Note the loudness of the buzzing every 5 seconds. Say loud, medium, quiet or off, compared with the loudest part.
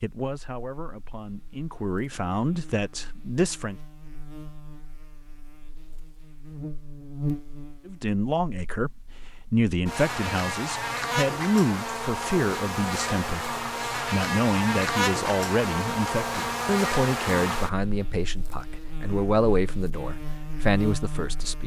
quiet, medium, loud, loud, medium.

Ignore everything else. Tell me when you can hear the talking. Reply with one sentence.
You can hear the talking from 0.0 to 3.8 s and from 7.8 to 21.6 s.